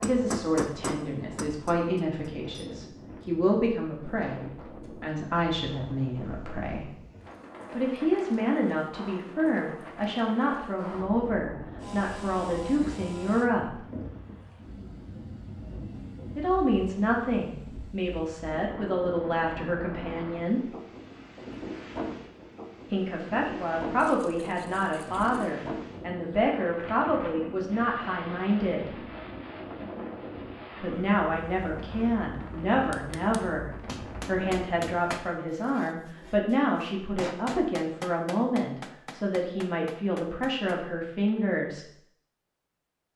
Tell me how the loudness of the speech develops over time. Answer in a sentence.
The loudness of the speech stays about the same.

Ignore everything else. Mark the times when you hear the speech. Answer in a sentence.
You can hear the speech from 0.0 to 6.9 s, from 7.7 to 13.8 s, from 16.4 to 20.7 s, from 22.9 to 29.0 s and from 30.8 to 41.9 s.